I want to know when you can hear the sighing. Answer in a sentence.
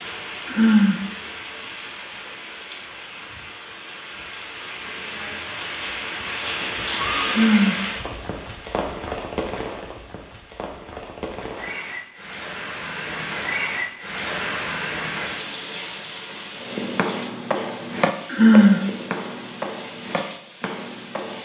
The sighing can be heard from 0.5 to 1.0 s, from 7.2 to 7.8 s and from 18.3 to 18.8 s.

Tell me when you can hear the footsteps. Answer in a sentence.
You can hear the footsteps from 16.6 to 21.4 s.